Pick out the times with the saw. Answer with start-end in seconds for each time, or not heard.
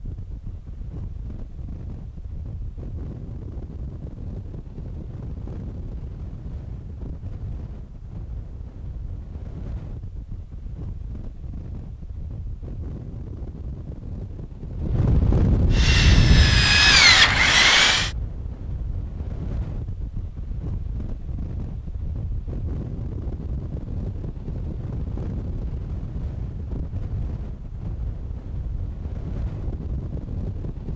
15.7-18.1.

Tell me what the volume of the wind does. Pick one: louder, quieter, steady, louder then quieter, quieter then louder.
louder then quieter.